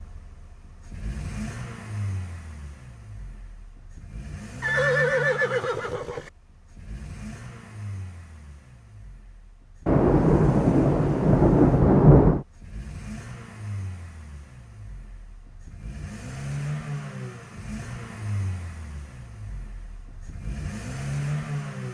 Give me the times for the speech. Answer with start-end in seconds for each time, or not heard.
not heard.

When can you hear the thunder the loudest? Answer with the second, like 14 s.
12 s.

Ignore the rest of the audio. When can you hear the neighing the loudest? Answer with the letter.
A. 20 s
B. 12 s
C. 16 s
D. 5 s
D.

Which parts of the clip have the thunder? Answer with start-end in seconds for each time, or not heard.
9.8-12.4.